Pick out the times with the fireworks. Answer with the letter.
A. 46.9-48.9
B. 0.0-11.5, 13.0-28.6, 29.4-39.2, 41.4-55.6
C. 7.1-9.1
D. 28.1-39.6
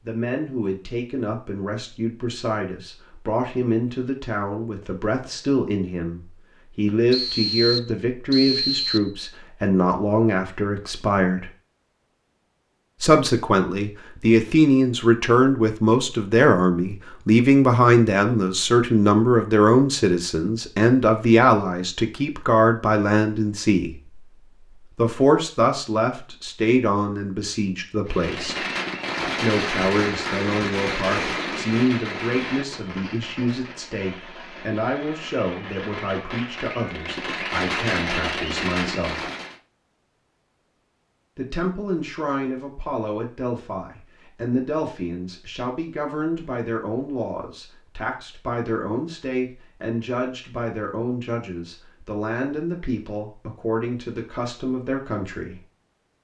D.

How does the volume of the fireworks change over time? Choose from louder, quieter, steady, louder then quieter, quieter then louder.
quieter then louder.